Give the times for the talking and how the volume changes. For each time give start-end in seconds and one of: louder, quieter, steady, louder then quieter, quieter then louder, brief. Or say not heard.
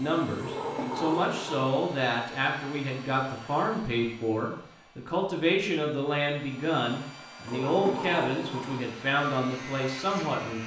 0.0-10.6 steady.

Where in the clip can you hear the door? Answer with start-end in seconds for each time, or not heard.
0.4-1.7, 7.5-8.9.